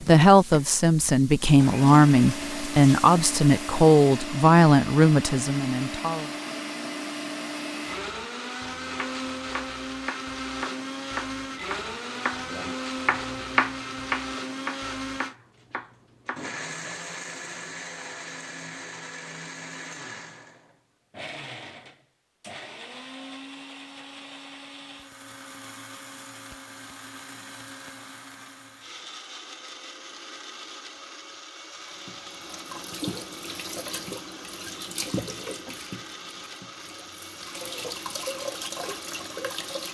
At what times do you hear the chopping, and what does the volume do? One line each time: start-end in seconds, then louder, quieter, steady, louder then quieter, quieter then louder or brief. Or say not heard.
8.9-16.4 louder then quieter.